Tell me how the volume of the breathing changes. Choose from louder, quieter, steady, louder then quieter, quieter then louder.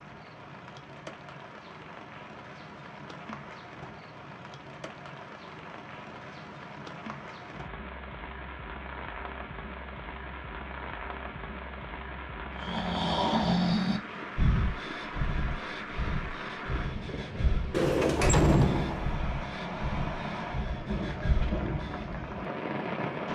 quieter.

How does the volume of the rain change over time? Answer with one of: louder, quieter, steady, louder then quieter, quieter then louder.
louder.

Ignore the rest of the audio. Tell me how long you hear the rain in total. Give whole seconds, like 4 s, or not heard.
23 s.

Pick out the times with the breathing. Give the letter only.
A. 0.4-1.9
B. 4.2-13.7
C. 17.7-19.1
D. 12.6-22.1
D.